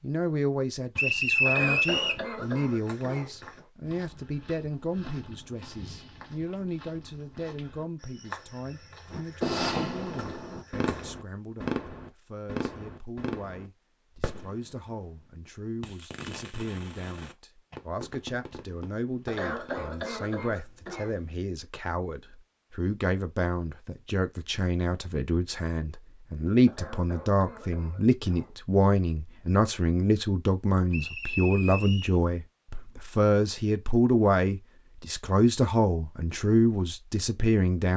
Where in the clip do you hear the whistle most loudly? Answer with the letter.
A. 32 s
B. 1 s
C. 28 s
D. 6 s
B.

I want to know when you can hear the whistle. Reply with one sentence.
The whistle can be heard from 0.9 to 2.2 s and from 30.9 to 32.2 s.